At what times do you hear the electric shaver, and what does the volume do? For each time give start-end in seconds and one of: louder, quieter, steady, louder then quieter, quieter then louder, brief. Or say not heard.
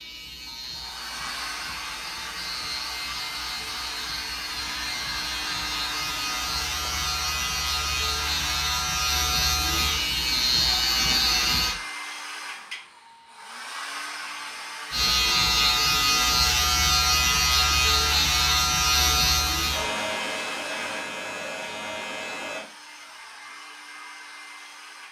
0.0-11.8 louder
14.9-22.6 quieter.